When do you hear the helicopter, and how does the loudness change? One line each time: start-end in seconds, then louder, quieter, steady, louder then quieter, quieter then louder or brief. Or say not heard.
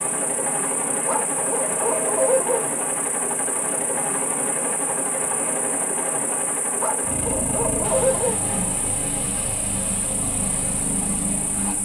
0.0-11.7 steady.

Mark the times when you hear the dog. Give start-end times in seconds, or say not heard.
1.1-2.6, 6.8-8.4.